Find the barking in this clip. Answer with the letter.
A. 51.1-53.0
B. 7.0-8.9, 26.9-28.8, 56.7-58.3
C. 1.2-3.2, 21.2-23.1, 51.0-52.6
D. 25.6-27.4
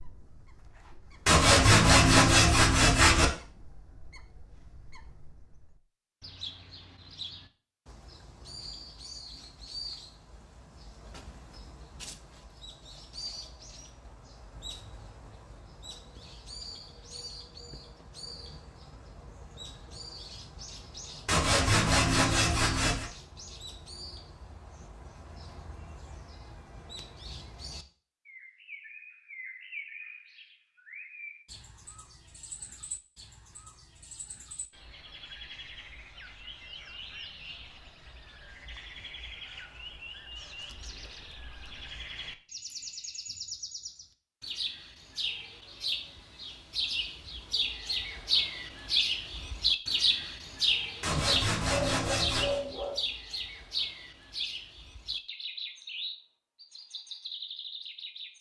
A.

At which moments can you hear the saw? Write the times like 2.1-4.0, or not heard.
1.2-3.2, 21.2-23.1, 51.0-52.6.